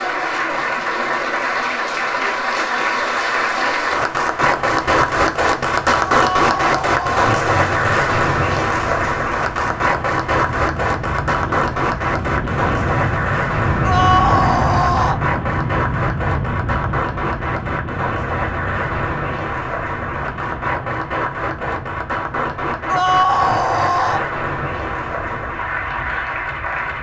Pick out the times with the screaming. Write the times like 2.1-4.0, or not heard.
6.1-7.2, 13.8-15.2, 22.9-24.2.